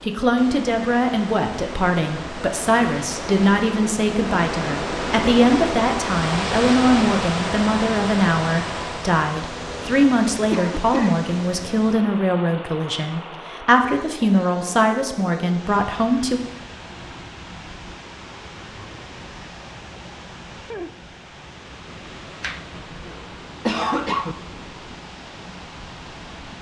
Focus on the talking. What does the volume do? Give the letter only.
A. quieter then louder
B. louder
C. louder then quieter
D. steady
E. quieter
D.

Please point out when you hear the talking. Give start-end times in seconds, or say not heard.
0.0-16.4.